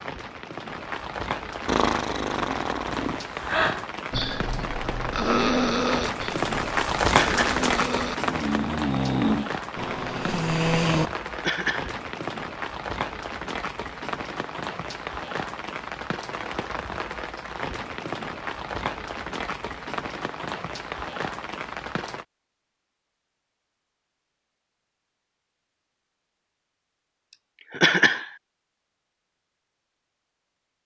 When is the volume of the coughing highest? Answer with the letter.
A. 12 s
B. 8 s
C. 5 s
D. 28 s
D.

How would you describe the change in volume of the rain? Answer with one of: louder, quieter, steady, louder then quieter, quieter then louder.
louder then quieter.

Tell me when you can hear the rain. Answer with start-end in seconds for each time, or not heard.
0.0-22.2.